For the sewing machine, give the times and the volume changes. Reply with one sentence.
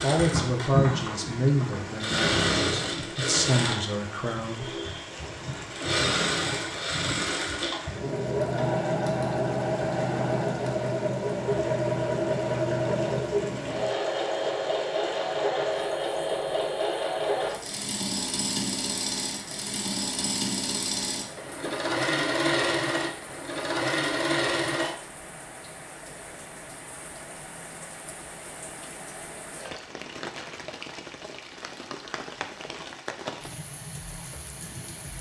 You can hear the sewing machine from 0.0 to 24.9 s, at a steady volume.